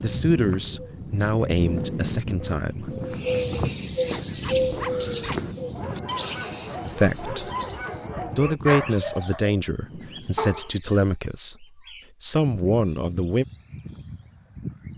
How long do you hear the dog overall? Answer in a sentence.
You can hear the dog for 7 seconds altogether.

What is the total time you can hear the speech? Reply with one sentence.
The speech can be heard for 9 seconds in total.